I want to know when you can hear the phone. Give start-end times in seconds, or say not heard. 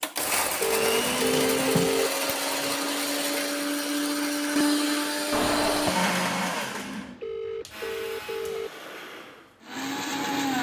0.1-2.1, 7.0-8.7.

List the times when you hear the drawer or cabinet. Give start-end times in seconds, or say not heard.
0.8-2.8, 5.3-6.0.